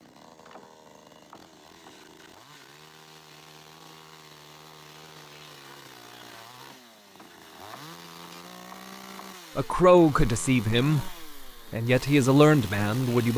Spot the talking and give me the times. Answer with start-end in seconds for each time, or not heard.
9.6-13.3.